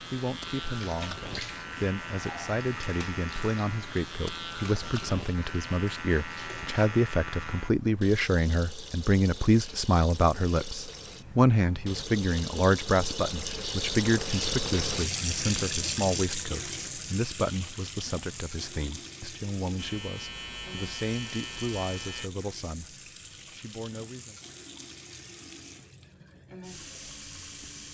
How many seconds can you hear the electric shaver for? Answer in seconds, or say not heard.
10 s.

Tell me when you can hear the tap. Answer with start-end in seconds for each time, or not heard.
0.0-27.8.